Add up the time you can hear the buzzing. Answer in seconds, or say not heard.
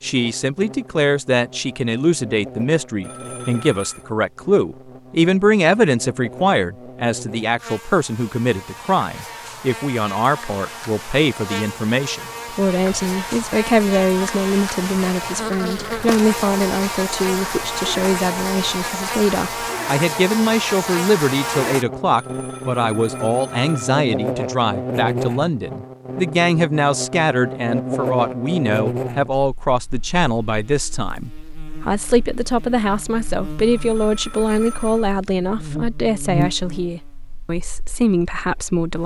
39 s.